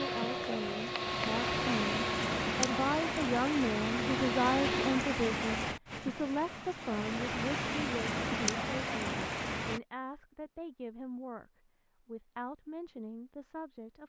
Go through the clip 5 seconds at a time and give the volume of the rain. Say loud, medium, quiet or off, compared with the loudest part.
loud, loud, off.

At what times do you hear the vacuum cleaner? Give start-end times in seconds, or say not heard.
0.0-5.0.